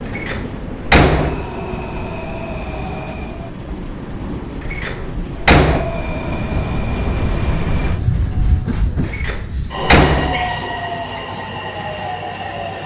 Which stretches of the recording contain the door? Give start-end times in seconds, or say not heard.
0.1-1.5, 4.7-5.9, 9.1-11.2.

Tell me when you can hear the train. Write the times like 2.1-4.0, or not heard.
0.0-12.8.